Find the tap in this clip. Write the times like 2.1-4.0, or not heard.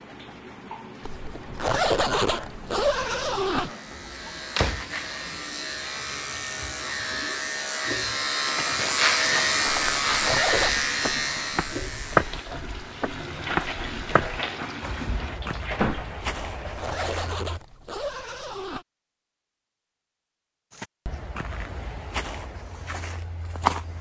0.0-17.1.